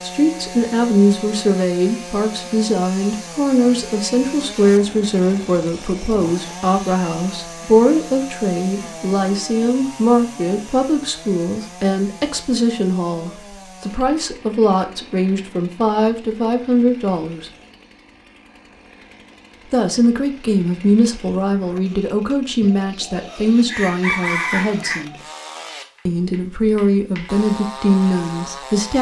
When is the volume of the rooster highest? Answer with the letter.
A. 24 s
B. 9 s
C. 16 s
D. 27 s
A.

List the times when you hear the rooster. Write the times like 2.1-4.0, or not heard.
22.6-25.1.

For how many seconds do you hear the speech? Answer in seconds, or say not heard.
26 s.